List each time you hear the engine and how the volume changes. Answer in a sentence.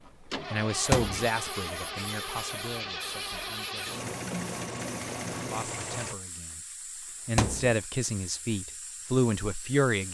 The engine can be heard from 0.0 to 6.2 s, at a steady volume.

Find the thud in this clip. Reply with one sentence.
You can hear the thud from 0.9 to 1.3 s and from 7.3 to 7.8 s.